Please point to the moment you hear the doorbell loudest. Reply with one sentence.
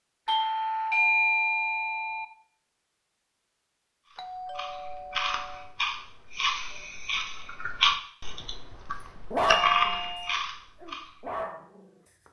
The volume of the doorbell peaks at 1 second.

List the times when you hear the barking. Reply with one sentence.
You can hear the barking from 9.3 to 9.9 s and from 10.8 to 11.8 s.